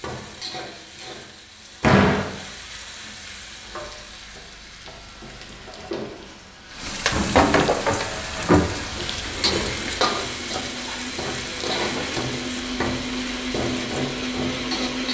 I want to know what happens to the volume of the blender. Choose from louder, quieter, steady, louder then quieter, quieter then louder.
louder.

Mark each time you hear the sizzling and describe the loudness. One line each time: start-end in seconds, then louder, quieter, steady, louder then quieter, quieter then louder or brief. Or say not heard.
0.0-15.1 louder then quieter.